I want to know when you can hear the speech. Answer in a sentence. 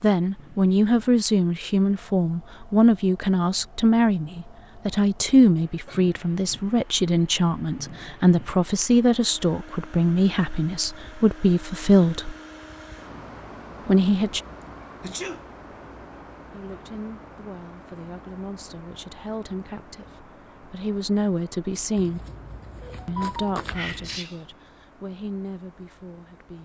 You can hear the speech from 0.0 to 12.3 s, from 13.8 to 14.4 s, from 16.4 to 22.2 s and from 23.1 to 26.6 s.